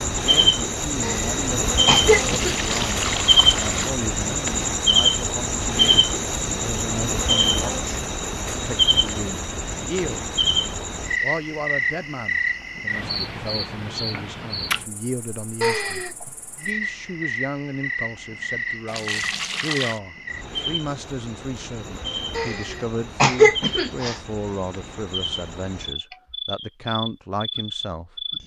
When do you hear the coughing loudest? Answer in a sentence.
The loudest moment of the coughing is at 23 seconds.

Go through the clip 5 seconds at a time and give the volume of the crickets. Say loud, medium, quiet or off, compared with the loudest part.
loud, loud, medium, medium, quiet, medium.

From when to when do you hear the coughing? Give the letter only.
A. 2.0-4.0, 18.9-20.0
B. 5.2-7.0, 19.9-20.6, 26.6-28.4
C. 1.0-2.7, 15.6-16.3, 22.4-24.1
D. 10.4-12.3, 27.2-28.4
C.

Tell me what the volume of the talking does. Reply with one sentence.
The volume of the talking stays about the same.